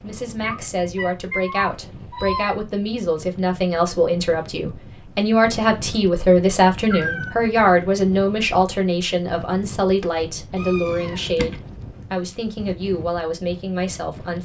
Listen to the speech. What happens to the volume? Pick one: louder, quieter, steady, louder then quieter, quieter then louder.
louder then quieter.